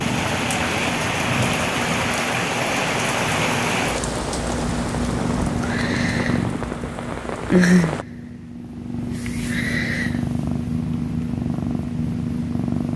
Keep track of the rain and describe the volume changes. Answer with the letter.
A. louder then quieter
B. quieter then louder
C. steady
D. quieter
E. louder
D.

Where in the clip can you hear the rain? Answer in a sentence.
The rain can be heard from 0.0 to 8.1 s.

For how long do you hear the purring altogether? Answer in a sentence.
The purring can be heard for 13 seconds in total.